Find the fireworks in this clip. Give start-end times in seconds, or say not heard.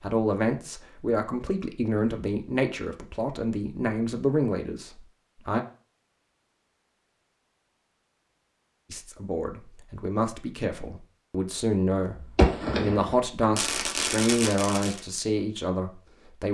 12.2-15.0.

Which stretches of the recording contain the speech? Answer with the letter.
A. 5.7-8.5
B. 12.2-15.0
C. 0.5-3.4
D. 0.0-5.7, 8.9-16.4
D.